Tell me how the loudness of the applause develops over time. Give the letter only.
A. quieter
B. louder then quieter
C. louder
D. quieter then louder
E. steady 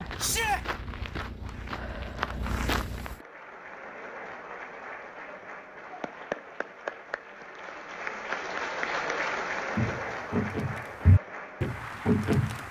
B.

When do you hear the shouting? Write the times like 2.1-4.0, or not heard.
0.1-0.6.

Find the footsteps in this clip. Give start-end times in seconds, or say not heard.
0.0-3.1, 9.8-12.6.